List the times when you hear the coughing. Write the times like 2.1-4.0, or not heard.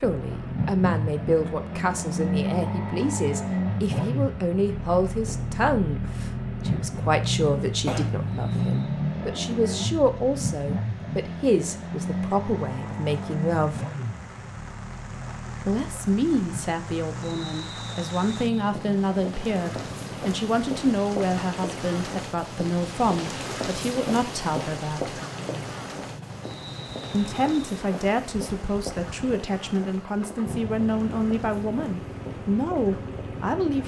7.8-8.8.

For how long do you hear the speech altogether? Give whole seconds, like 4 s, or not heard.
30 s.